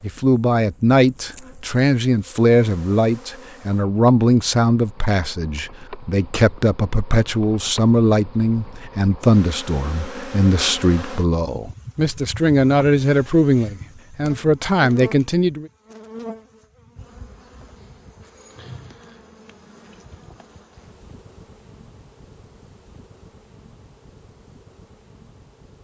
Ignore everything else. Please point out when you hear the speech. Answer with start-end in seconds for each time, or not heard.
0.0-15.7.